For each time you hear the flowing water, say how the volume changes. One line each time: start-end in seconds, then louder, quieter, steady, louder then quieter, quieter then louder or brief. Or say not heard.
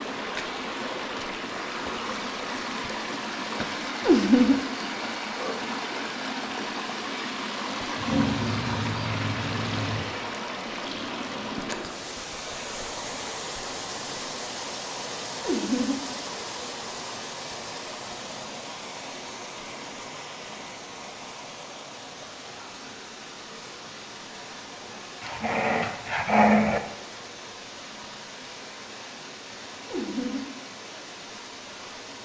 0.0-32.2 quieter.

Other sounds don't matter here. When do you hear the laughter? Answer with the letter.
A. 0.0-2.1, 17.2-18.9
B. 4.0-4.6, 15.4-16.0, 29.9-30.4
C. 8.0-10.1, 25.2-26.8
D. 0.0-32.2
B.